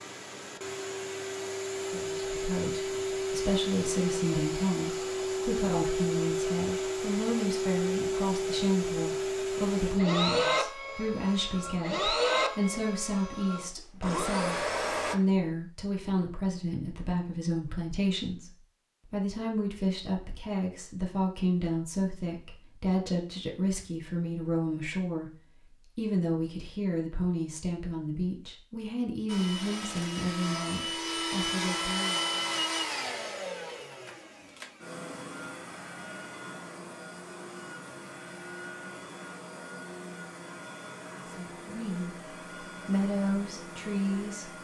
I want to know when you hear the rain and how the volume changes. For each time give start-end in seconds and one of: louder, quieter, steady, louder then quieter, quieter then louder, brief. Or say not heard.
not heard.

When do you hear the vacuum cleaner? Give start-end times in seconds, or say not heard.
0.0-15.2, 29.2-44.5.